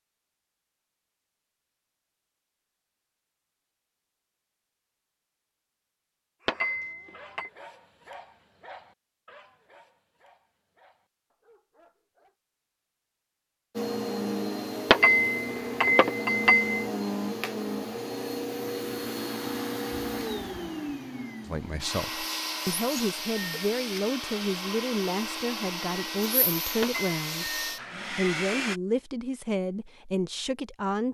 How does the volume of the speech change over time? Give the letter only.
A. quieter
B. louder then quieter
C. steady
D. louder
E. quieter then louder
C.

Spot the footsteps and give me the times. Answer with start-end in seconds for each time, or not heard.
not heard.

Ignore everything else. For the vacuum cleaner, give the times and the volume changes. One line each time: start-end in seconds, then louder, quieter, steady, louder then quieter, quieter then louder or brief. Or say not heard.
13.7-28.8 steady.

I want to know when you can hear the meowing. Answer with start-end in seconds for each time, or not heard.
not heard.